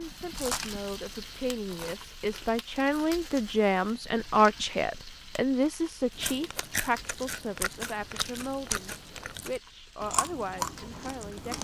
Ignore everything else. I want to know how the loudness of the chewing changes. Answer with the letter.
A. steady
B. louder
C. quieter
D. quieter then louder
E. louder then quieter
D.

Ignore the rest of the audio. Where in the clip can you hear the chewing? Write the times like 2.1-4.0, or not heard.
0.0-3.5, 6.1-11.5.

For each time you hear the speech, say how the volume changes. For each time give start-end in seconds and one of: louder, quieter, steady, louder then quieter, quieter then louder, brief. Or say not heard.
0.0-11.5 louder then quieter.